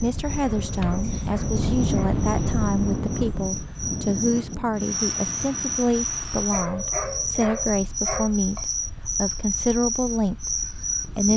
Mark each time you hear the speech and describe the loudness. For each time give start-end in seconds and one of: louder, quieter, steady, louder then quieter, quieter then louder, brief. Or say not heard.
0.0-11.3 steady.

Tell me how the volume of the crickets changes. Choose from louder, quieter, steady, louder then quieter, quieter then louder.
louder.